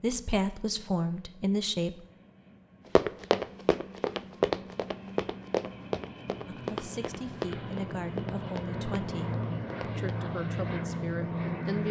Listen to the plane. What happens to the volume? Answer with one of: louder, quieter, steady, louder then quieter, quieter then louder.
louder.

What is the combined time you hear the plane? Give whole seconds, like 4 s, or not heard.
12 s.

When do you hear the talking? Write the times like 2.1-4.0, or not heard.
0.0-2.0, 6.5-11.8.